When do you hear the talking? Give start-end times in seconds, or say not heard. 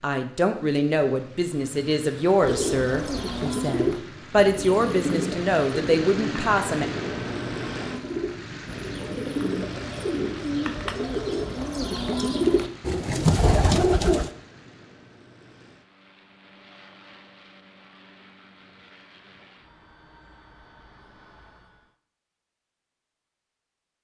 0.0-6.8.